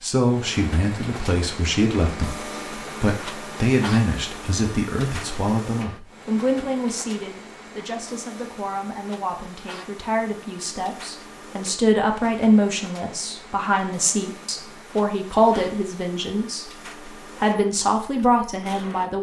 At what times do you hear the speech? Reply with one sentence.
The speech can be heard from 0.0 to 19.1 s.